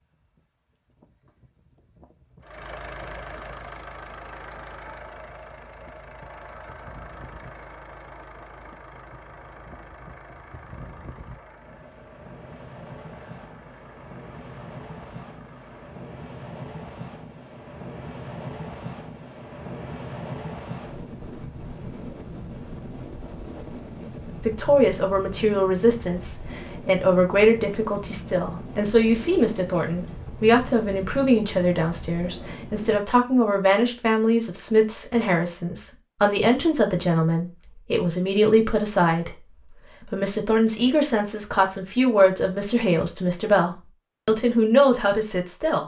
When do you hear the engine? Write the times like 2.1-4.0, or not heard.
2.4-15.9.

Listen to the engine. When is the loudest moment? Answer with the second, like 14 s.
3 s.